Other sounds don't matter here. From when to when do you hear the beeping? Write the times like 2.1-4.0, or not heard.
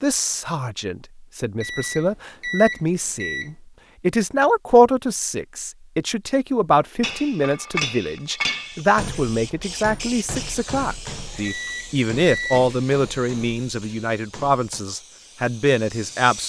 1.6-3.5, 11.4-12.7.